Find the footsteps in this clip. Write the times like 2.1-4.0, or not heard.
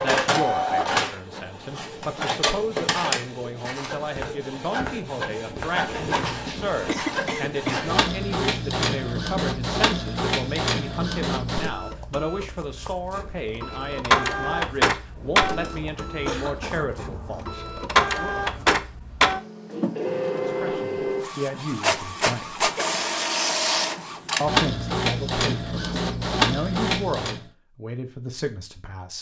2.8-8.0.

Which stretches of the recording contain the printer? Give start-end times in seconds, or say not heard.
0.0-27.4.